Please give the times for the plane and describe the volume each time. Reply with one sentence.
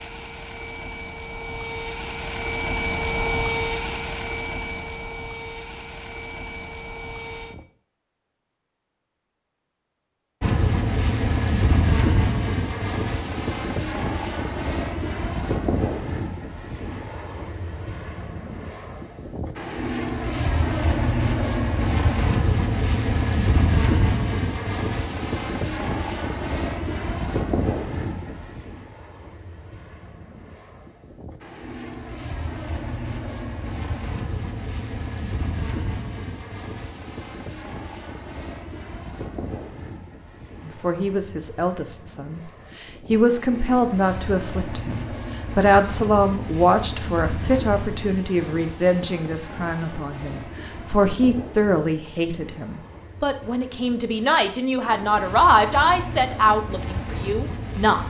You can hear the plane from 0.0 to 7.7 s, getting louder then quieter; and from 10.4 to 58.0 s, getting quieter.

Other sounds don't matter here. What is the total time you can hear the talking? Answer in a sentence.
You can hear the talking for 17 seconds altogether.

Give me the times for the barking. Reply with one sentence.
You can't hear the barking here.